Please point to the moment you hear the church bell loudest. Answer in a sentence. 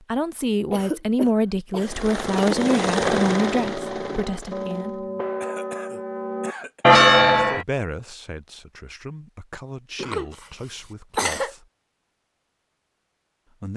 The loudest moment of the church bell is at 7 seconds.